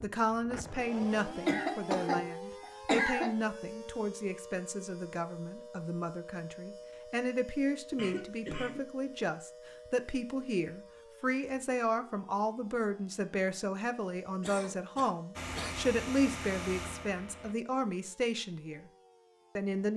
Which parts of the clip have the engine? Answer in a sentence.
The engine can be heard from 15.3 to 17.6 s.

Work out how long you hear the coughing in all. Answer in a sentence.
The coughing can be heard for 4 seconds in total.